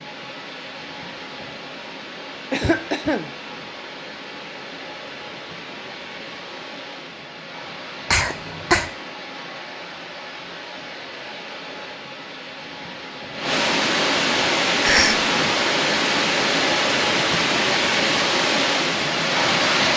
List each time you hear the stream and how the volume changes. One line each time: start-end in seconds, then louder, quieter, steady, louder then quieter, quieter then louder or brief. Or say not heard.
0.0-19.9 louder.